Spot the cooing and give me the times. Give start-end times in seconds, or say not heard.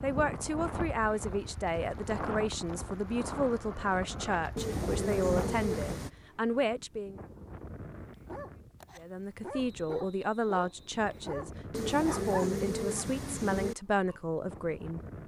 4.5-6.1, 11.7-13.8.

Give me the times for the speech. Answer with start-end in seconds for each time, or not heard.
0.0-7.2, 8.9-15.0.